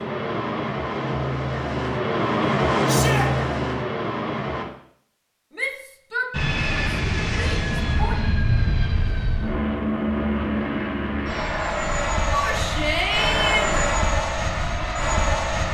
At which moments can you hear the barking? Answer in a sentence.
The barking can't be heard in this clip.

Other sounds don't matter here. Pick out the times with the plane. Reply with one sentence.
The plane can be heard from 0.0 to 4.7 s and from 6.3 to 15.6 s.